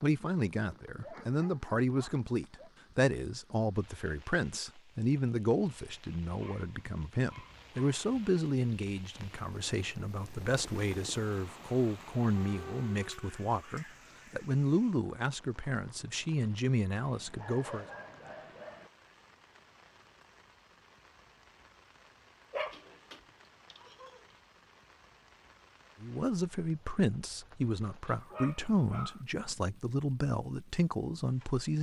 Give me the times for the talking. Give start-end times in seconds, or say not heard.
0.0-17.9, 26.0-31.7.